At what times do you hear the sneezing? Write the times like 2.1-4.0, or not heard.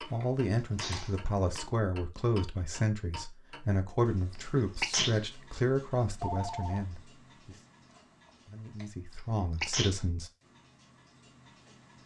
0.8-1.6, 4.3-5.2, 9.2-10.1.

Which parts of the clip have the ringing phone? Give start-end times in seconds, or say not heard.
6.2-6.8.